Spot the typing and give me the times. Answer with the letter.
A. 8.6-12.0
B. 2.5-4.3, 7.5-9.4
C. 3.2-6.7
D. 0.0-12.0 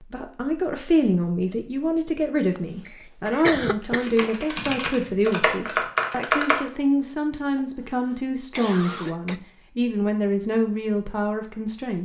C.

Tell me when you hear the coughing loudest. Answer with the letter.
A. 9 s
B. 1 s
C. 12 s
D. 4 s
D.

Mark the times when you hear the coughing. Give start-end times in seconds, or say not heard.
2.5-4.3, 7.5-9.4.